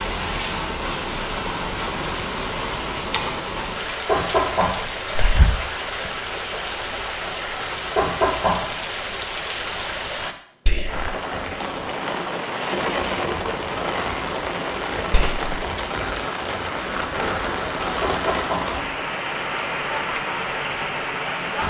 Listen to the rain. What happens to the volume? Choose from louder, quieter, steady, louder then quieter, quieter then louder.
steady.